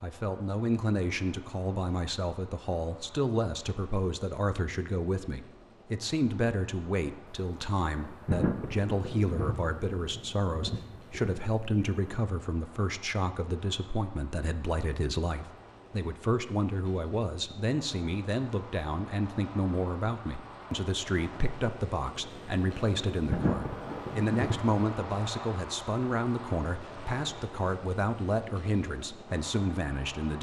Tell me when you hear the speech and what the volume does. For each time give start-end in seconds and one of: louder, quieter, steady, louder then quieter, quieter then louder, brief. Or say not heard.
0.0-30.3 steady.